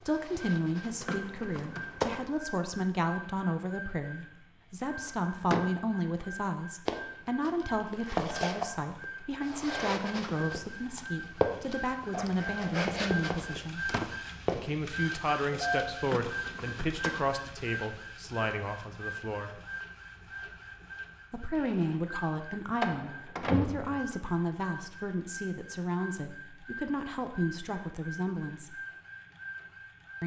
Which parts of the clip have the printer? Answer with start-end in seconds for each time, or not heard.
0.0-30.2.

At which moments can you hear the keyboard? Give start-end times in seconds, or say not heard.
1.0-2.2, 16.0-17.3.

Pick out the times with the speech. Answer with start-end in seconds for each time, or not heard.
0.1-13.9, 14.6-19.6, 21.3-28.8.